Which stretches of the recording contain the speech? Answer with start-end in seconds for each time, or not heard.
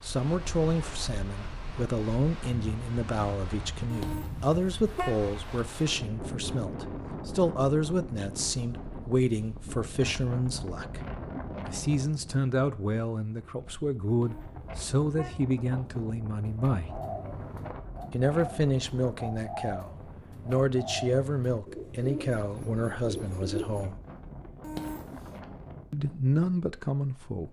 0.0-11.0, 11.7-16.9, 18.1-23.9, 25.9-27.4.